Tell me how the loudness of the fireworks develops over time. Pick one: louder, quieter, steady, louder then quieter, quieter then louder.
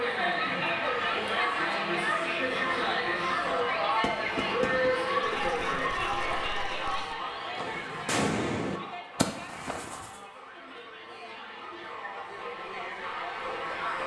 quieter then louder.